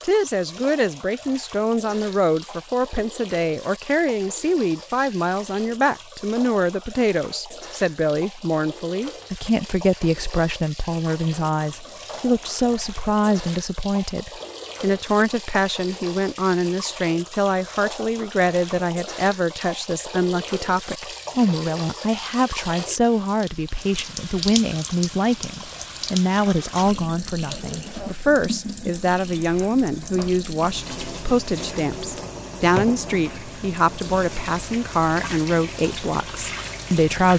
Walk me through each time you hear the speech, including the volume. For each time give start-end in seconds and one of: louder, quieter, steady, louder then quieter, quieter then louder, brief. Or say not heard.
0.0-37.3 steady.